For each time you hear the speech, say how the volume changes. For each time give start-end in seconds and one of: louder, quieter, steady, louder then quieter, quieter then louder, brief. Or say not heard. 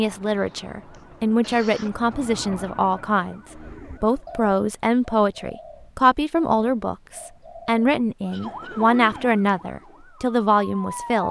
0.0-11.2 steady.